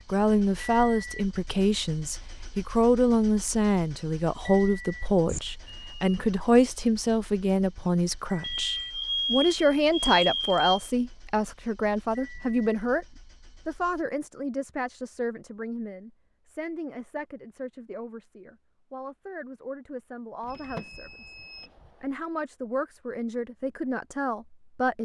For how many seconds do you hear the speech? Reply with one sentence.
You can hear the speech for 24 seconds altogether.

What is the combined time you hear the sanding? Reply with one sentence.
You can't hear the sanding here.